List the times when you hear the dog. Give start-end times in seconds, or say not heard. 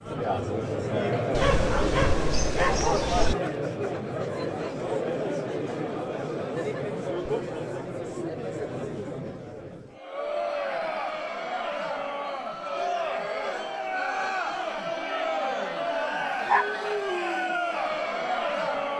1.3-3.4, 14.9-16.6.